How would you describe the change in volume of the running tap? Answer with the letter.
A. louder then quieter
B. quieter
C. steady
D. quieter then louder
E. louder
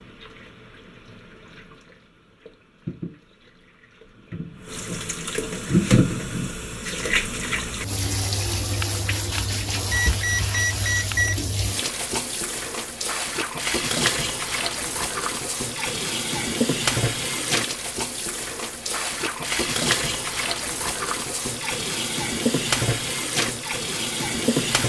E.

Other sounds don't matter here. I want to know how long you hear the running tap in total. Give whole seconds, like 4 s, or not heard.
25 s.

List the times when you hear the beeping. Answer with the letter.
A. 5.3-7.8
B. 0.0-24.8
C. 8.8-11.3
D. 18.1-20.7
C.